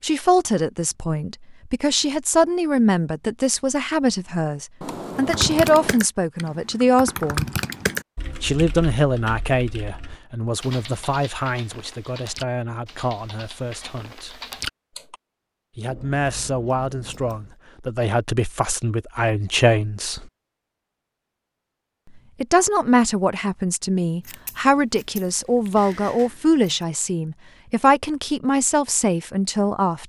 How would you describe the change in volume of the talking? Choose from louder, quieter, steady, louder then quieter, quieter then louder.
quieter then louder.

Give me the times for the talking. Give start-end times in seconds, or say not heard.
0.0-7.5, 8.4-14.3, 15.8-20.2, 22.4-30.0.